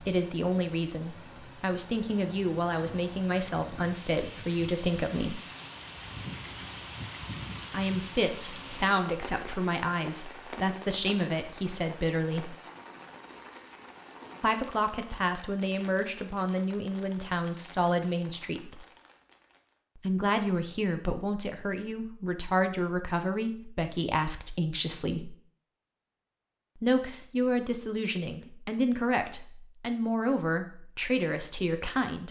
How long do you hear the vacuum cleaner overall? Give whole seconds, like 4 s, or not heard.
not heard.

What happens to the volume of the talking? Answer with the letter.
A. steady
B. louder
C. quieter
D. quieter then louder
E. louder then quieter
A.